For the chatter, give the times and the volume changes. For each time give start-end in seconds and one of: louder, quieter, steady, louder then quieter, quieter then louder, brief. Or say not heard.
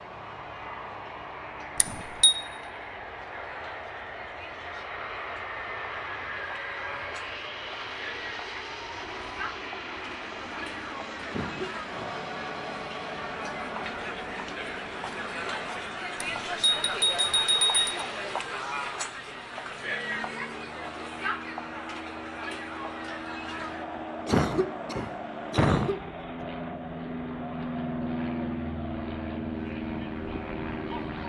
0.0-31.2 louder then quieter.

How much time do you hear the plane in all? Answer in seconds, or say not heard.
31 s.